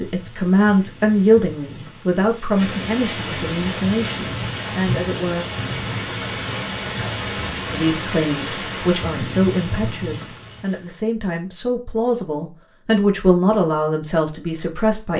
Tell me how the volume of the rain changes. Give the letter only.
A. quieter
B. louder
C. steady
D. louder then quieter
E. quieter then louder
B.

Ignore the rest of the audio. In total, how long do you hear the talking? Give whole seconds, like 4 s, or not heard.
13 s.